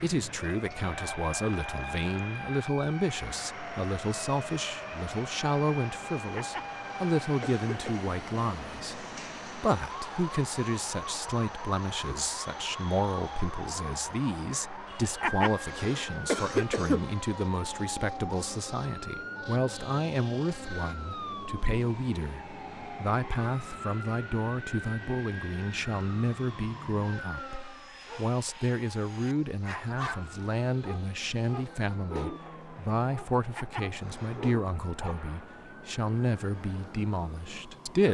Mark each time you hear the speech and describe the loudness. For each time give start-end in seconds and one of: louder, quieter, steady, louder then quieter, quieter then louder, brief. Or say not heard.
0.0-38.0 steady.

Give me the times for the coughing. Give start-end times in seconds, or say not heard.
6.3-8.0, 15.2-17.1, 33.5-34.5.